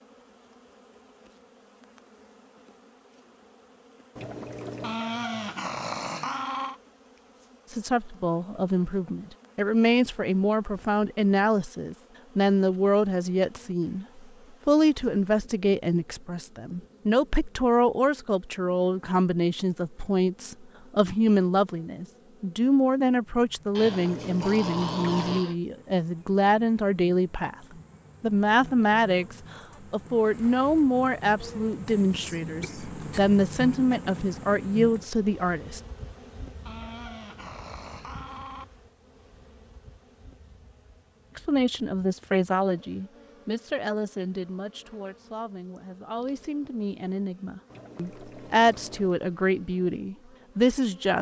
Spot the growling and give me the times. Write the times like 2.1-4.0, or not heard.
4.8-6.8, 23.8-25.6, 36.6-38.6.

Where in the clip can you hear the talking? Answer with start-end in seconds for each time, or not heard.
7.7-27.6, 28.2-35.8, 41.4-51.1.